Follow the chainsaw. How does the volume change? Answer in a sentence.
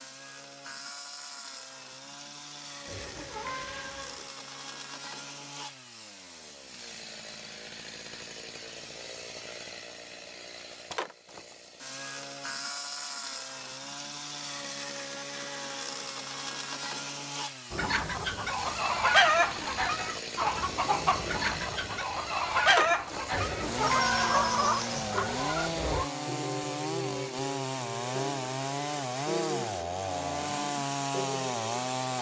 The loudness of the chainsaw goes up.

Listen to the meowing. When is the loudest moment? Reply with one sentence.
The volume of the meowing peaks at 24 seconds.